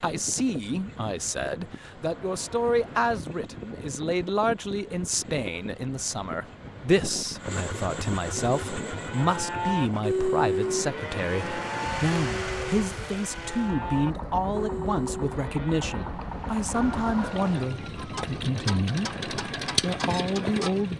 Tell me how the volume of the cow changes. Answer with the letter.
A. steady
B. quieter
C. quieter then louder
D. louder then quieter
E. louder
B.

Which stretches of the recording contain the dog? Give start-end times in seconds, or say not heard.
not heard.